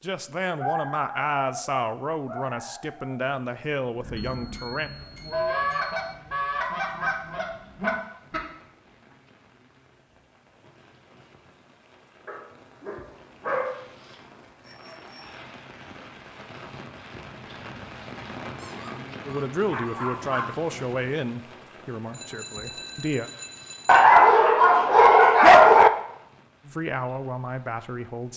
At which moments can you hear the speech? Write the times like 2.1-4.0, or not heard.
0.0-4.9, 19.2-23.3, 26.6-28.3.